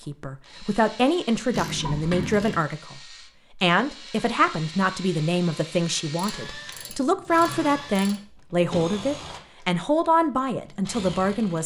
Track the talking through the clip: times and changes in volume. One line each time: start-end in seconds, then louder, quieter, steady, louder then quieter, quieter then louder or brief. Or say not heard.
0.0-11.6 steady.